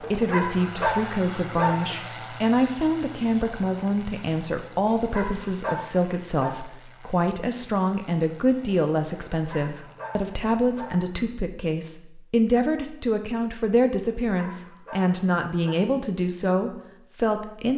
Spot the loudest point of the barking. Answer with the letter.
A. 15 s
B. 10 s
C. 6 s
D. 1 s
D.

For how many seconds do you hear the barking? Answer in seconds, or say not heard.
7 s.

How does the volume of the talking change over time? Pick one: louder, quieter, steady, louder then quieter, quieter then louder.
steady.